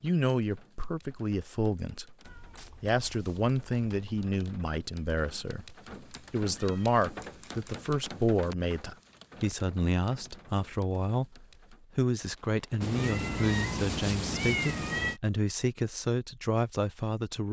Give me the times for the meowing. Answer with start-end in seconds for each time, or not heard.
2.2-4.2, 6.1-7.8, 12.8-15.2.